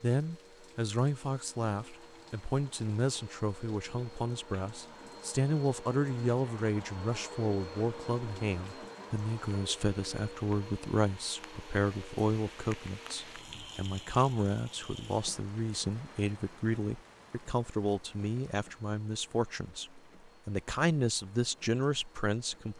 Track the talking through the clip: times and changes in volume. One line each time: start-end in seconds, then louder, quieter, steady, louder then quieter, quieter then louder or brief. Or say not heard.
0.0-22.7 steady.